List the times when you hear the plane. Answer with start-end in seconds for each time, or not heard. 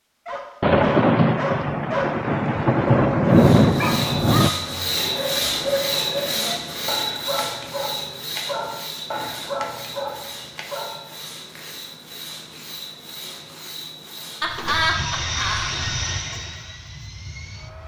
14.4-17.8.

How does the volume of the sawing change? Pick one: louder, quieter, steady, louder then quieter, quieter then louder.
quieter.